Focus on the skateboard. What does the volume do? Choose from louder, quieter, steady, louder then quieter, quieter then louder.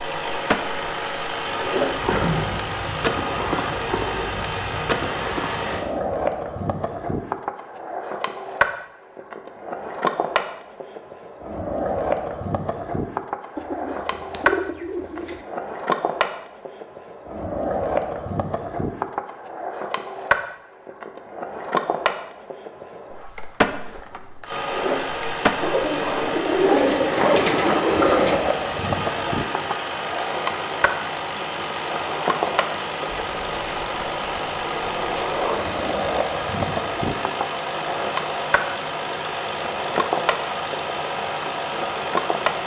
steady.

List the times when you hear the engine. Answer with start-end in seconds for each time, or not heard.
0.0-5.8, 24.4-42.6.